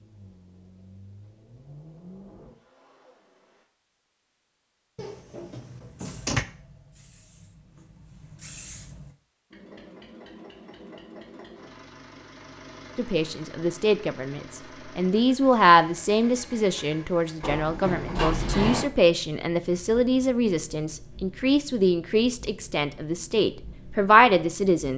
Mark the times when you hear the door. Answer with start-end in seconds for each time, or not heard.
5.0-6.5, 17.4-18.9.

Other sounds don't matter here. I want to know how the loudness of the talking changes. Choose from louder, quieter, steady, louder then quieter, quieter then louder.
steady.